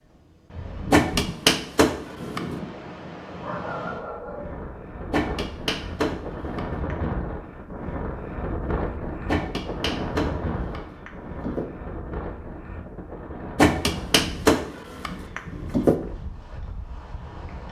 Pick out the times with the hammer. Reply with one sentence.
You can hear the hammer from 0.9 to 2.5 s, from 5.1 to 7.0 s, from 9.2 to 11.7 s and from 13.6 to 15.9 s.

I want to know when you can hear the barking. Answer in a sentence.
You can hear the barking from 3.4 to 4.6 s.